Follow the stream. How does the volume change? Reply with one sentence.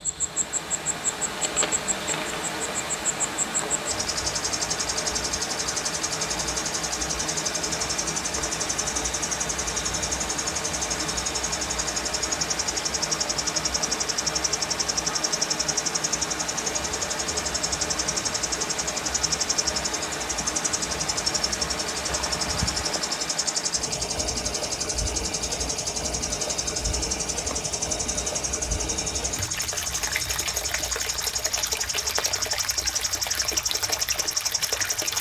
The loudness of the stream stays about the same.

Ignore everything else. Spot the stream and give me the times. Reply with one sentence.
You can hear the stream from 0.0 to 35.1 s.